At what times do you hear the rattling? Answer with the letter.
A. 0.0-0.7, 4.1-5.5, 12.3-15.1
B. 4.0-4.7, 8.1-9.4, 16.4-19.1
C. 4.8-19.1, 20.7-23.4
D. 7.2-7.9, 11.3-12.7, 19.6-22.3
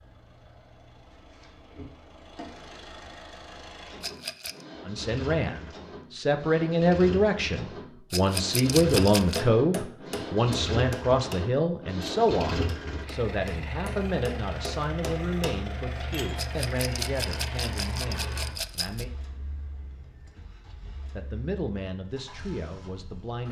B.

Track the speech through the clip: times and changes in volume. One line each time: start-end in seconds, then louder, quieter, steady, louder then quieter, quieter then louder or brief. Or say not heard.
4.8-19.1 quieter
20.7-23.4 brief.